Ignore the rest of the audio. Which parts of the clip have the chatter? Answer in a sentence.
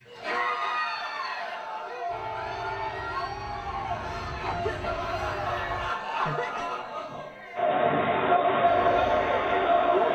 You can hear the chatter from 0.0 to 10.1 s.